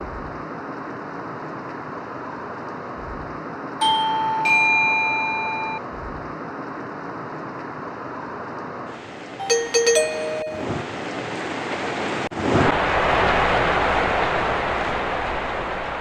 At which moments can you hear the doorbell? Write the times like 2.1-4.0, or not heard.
3.8-5.8, 9.4-10.7.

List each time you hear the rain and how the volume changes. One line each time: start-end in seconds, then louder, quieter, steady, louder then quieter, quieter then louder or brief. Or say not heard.
0.0-15.9 louder.